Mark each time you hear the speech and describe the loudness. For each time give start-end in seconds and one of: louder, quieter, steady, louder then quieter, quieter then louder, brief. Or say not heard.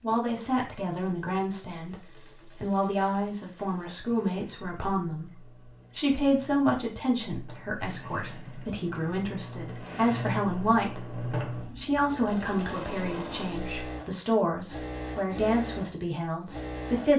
0.0-1.9 brief
2.5-17.1 steady.